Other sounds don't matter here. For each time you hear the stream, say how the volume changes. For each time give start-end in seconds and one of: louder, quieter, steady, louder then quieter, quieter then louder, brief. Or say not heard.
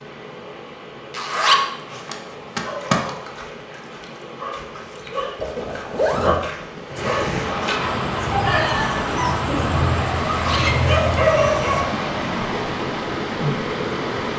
0.0-14.3 louder.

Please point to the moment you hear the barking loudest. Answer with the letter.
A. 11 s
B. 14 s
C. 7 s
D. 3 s
A.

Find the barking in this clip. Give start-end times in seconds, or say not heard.
2.5-12.5.